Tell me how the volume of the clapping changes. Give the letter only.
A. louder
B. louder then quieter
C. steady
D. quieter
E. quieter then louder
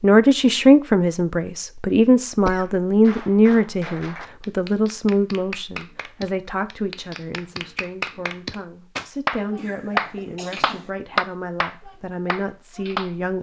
A.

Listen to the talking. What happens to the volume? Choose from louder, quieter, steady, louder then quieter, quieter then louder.
quieter.